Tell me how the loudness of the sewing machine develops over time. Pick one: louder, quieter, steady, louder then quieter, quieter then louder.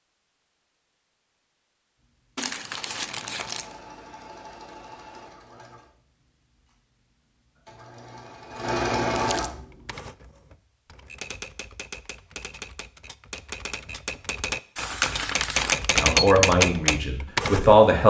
quieter then louder.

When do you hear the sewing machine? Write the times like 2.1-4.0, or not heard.
2.0-10.1.